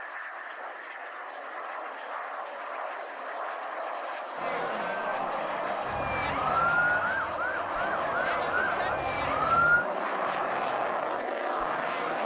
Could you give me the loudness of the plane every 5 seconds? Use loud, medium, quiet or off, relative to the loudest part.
medium, loud, loud.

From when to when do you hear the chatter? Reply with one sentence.
The chatter can be heard from 4.3 to 12.2 s.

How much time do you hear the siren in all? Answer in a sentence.
The siren can be heard for 4 seconds in total.